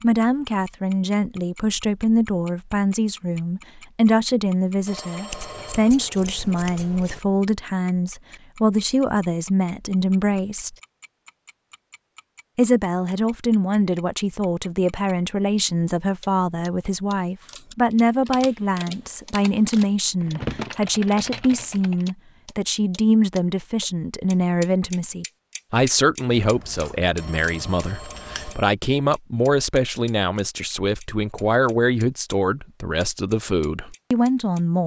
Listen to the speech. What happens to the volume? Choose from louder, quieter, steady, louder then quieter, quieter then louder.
steady.